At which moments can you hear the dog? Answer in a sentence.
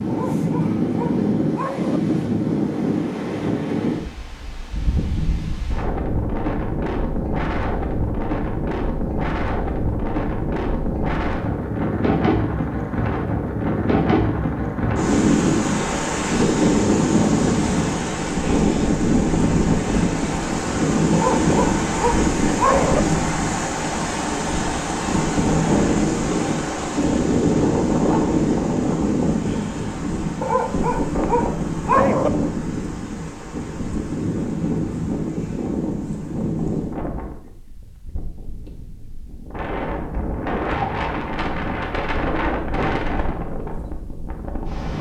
The dog can be heard from 0.1 to 2.0 s, from 21.1 to 23.0 s and from 30.4 to 32.3 s.